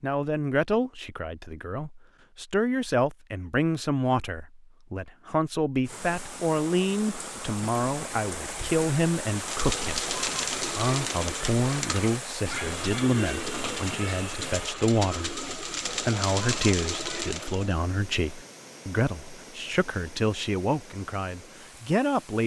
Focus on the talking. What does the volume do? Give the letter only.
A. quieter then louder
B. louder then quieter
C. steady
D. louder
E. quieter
C.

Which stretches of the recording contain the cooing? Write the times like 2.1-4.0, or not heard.
9.2-17.8.